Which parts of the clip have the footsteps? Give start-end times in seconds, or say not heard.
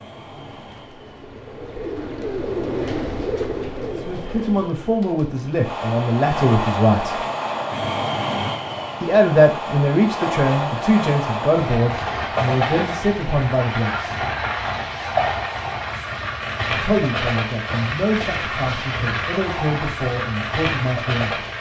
not heard.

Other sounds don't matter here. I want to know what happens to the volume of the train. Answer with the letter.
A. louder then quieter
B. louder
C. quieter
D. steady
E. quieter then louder
B.